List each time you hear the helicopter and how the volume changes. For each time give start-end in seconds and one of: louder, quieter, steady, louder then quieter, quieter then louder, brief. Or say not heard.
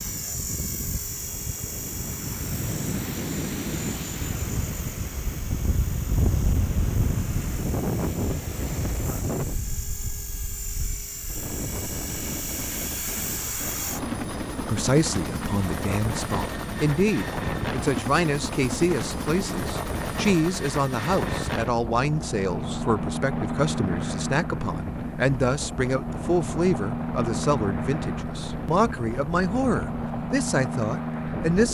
0.0-31.6 louder.